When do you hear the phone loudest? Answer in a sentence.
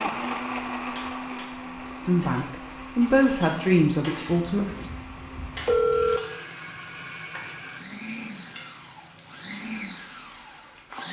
The volume of the phone peaks at 6 seconds.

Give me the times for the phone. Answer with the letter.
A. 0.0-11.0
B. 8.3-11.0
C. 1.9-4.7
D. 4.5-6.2
D.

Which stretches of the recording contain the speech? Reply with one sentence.
You can hear the speech from 1.9 to 4.7 s.